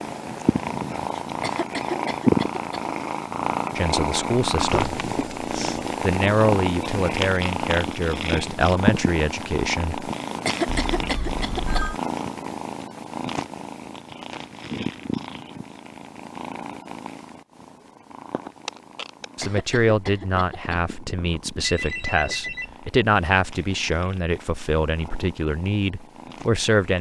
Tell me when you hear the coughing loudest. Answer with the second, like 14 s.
11 s.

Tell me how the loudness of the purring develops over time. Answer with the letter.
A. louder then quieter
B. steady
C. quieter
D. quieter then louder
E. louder
C.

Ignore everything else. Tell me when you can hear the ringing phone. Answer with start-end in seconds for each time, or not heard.
4.7-6.0, 10.7-12.0, 21.6-22.8.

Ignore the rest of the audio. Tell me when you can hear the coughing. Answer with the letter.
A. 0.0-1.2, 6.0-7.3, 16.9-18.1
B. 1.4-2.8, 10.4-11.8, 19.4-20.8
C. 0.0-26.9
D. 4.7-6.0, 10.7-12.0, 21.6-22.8
B.